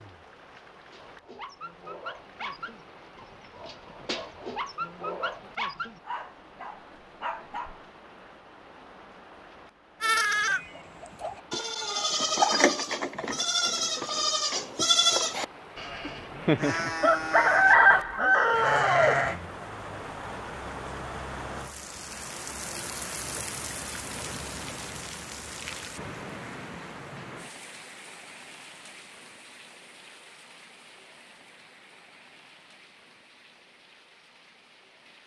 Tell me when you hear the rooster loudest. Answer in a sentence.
The loudest moment of the rooster is at 18 seconds.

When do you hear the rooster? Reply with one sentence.
The rooster can be heard from 16.1 to 19.2 s.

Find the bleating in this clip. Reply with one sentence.
The bleating can be heard from 10.0 to 19.5 s.